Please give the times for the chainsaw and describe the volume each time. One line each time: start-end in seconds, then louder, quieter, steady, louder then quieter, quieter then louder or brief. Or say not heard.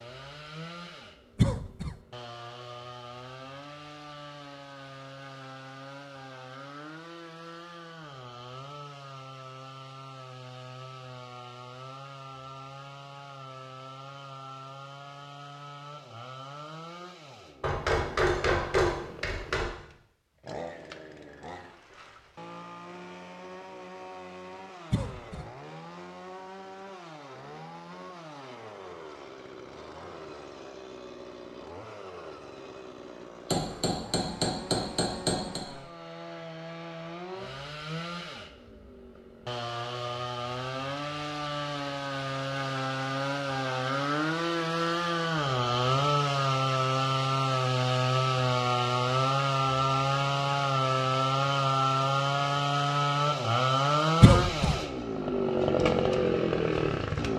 0.0-57.3 louder.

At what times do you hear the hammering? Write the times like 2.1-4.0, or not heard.
17.6-19.6, 33.5-35.6.